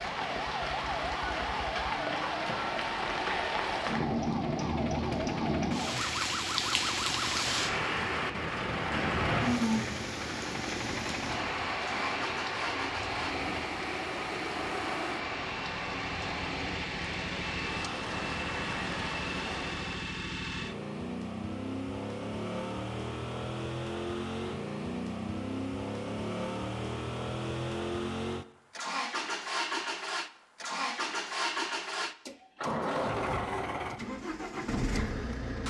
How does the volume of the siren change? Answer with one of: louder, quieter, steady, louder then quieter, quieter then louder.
steady.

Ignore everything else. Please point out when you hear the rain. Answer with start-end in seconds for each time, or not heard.
0.0-20.1.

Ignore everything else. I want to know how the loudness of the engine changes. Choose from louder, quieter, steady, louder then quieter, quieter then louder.
louder.